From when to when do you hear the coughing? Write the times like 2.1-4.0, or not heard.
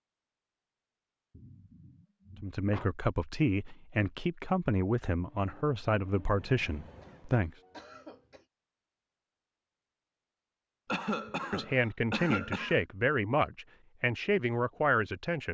1.3-2.9, 6.8-8.4, 10.8-12.8.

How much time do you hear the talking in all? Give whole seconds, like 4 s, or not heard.
9 s.